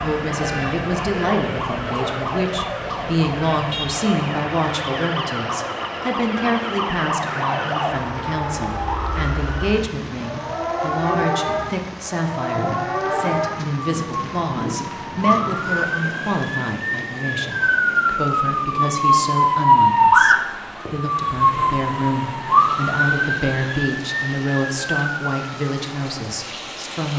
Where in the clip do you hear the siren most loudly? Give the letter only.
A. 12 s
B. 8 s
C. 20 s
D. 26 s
C.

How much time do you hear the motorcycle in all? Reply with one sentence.
The motorcycle can't be heard in this clip.